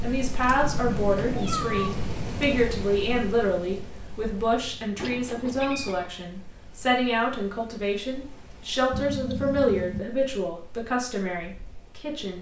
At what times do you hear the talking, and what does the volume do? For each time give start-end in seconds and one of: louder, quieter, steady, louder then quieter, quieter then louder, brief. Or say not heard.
0.0-12.3 steady.